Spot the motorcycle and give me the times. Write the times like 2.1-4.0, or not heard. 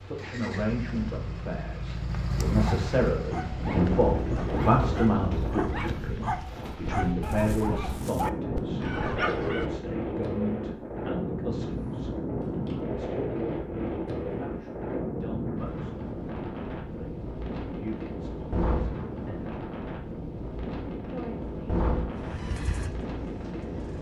0.0-5.3, 22.1-23.9.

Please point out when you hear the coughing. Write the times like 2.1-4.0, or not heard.
not heard.